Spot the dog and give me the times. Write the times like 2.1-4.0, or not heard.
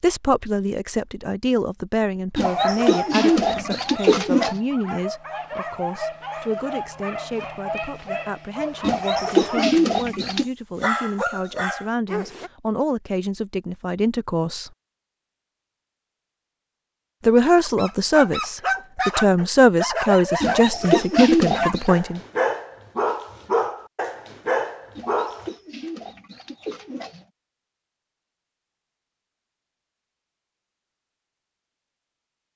2.5-12.5, 17.6-25.5.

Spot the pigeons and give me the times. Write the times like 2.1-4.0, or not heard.
2.4-4.6, 8.8-10.4, 20.4-21.9, 24.9-27.2.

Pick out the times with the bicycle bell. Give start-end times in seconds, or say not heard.
not heard.